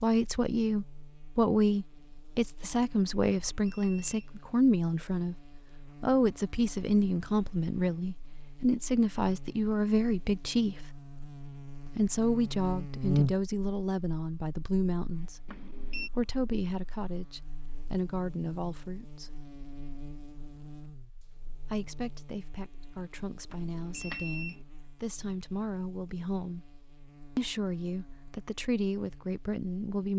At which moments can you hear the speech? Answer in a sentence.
The speech can be heard from 0.0 to 5.3 s, from 6.0 to 10.8 s, from 11.8 to 19.4 s, from 21.6 to 26.7 s and from 27.4 to 30.1 s.